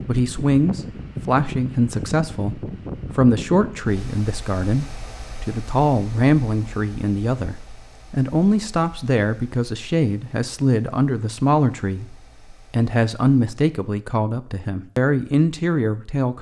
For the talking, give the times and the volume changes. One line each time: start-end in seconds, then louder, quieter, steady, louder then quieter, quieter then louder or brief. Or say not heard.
0.1-16.3 steady.